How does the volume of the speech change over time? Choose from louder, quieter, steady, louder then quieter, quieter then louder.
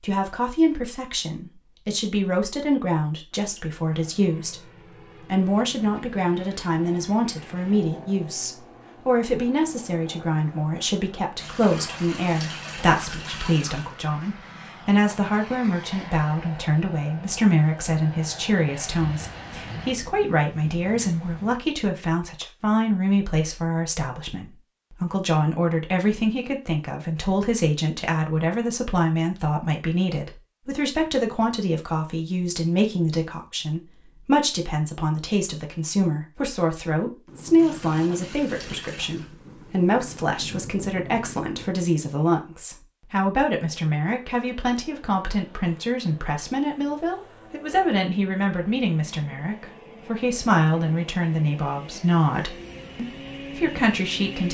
steady.